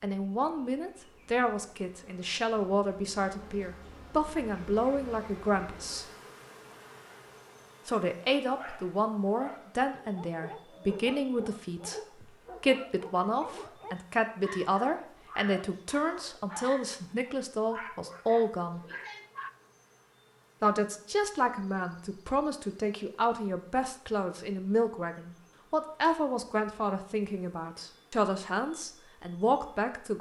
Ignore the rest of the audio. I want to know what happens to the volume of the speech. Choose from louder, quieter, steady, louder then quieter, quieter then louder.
steady.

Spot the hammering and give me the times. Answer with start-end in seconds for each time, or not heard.
not heard.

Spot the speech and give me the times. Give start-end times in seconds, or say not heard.
0.0-6.0, 7.8-18.8, 20.6-30.1.